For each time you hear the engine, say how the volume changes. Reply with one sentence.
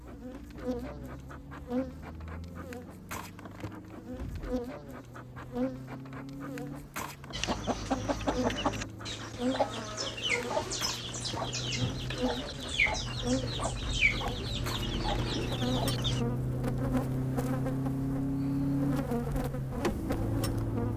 You can hear the engine from 0.0 to 20.9 s, getting louder.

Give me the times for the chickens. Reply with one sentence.
You can hear the chickens from 7.3 to 16.2 s.